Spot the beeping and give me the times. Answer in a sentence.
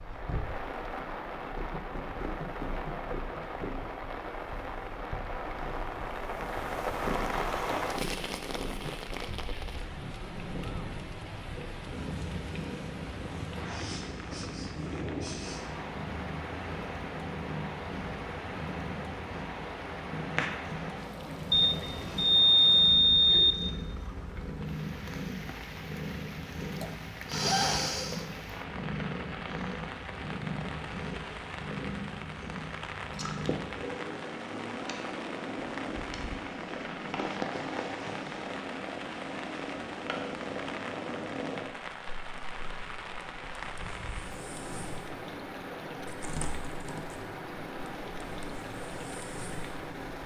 You can hear the beeping from 21.5 to 23.6 s.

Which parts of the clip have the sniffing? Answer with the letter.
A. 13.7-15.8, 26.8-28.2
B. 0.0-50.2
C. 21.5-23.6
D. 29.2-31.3
A.